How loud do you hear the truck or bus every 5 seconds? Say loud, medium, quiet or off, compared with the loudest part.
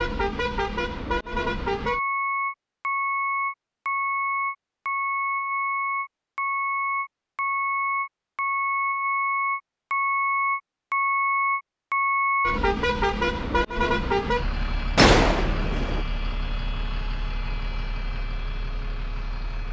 loud, loud, loud, quiet.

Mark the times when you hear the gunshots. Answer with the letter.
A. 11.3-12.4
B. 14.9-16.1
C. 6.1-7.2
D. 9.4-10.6
B.